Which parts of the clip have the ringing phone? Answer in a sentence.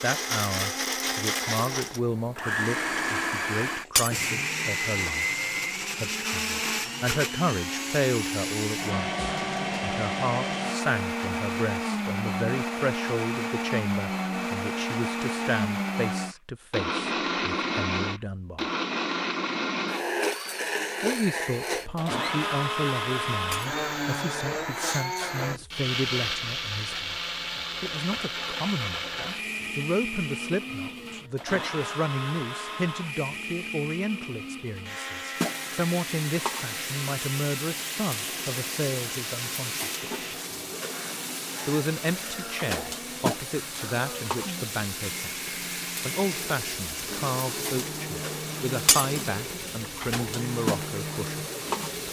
The ringing phone can't be heard in this clip.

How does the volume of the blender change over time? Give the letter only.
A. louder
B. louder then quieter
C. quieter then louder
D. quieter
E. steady
D.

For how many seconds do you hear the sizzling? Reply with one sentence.
You can hear the sizzling for 17 seconds altogether.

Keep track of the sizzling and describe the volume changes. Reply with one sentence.
The loudness of the sizzling stays about the same.